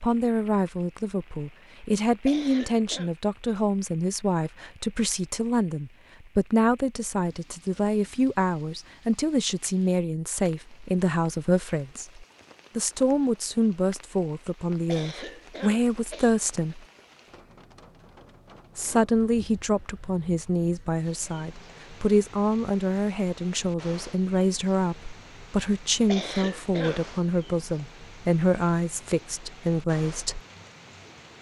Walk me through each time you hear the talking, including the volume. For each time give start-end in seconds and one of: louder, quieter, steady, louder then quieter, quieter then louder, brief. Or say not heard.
0.0-16.9 steady
18.8-30.4 steady.